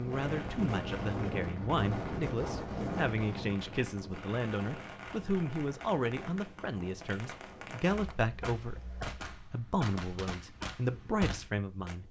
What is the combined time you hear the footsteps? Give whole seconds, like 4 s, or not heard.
not heard.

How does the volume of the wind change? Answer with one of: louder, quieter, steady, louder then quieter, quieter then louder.
quieter.